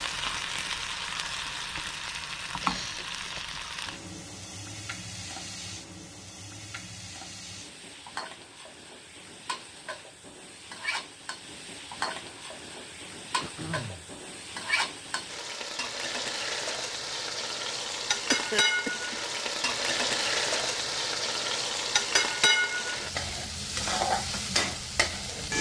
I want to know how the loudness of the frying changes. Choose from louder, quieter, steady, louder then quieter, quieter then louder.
quieter then louder.